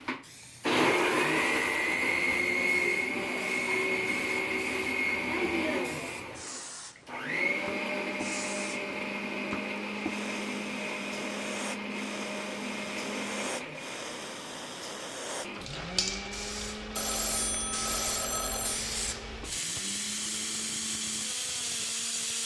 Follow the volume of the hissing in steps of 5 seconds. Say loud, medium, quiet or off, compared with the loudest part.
quiet, medium, medium, loud, loud.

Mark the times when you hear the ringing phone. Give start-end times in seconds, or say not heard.
16.9-18.9.